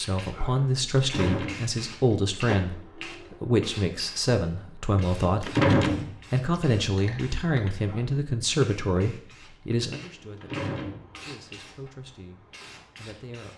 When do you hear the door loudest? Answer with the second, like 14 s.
6 s.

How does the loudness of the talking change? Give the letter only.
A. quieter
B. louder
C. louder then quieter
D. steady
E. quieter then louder
A.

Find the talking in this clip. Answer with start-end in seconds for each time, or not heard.
0.0-5.7, 6.3-13.5.